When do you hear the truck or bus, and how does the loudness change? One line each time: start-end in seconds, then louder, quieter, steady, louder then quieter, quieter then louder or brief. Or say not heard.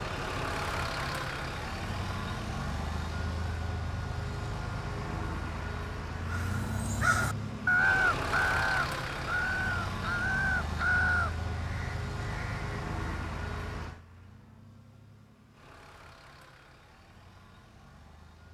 0.0-18.4 quieter.